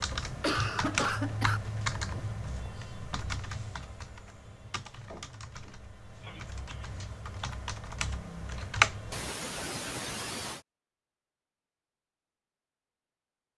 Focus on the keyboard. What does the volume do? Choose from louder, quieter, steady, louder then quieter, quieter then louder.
quieter then louder.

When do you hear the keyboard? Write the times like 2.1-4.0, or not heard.
0.0-9.3.